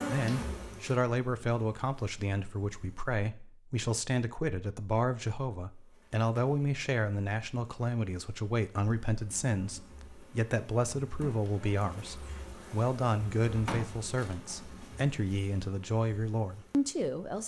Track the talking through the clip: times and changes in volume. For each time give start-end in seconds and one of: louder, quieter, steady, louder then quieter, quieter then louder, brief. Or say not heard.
0.1-17.4 steady.